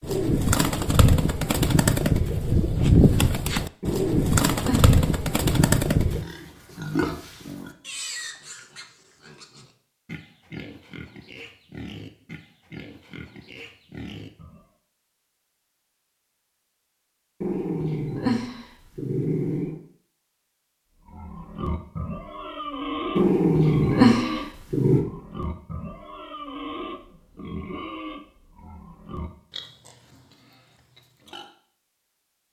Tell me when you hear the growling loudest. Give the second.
24 s.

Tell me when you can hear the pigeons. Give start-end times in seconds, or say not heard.
0.0-6.2.